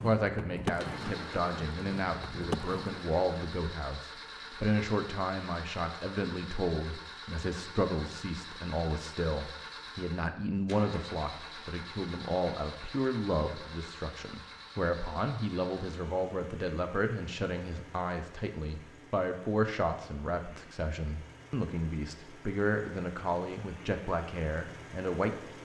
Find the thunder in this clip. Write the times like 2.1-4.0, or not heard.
not heard.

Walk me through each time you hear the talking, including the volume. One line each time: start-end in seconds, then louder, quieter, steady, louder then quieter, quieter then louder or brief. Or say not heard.
0.0-25.4 steady.